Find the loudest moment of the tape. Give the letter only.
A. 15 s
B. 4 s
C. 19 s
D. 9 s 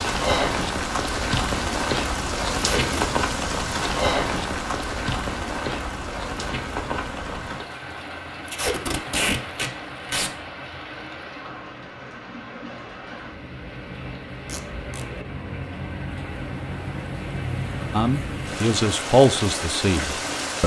D.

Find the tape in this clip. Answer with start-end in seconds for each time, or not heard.
2.5-3.0, 8.4-10.3, 14.4-15.1.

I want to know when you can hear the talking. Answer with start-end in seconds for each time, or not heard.
17.9-20.6.